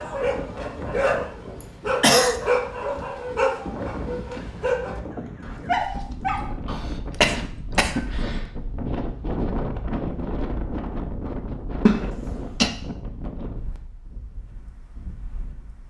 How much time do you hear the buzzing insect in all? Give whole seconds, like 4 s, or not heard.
not heard.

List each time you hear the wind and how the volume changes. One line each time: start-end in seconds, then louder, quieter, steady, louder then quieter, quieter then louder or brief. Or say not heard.
0.0-15.8 louder then quieter.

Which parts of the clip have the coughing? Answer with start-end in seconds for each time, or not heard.
1.6-2.4, 6.7-8.3, 11.8-12.7.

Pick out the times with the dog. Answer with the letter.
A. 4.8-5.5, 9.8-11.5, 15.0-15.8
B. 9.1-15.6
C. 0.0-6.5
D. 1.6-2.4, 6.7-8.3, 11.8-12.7
C.